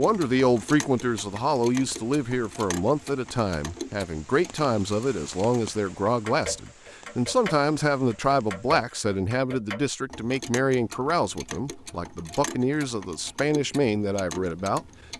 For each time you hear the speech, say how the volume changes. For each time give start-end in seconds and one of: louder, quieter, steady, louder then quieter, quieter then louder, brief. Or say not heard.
0.0-15.1 steady.